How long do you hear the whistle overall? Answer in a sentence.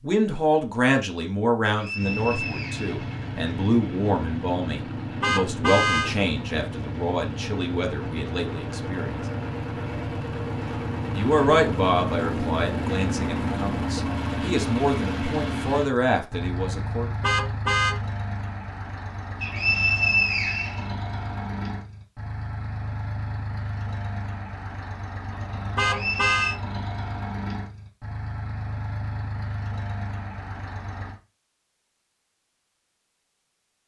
You can hear the whistle for 4 seconds altogether.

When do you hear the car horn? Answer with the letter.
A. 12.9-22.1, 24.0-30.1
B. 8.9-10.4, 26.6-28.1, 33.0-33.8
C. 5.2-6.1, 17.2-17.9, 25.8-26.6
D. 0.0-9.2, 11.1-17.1
C.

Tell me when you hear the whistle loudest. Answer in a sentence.
The volume of the whistle peaks at 20 seconds.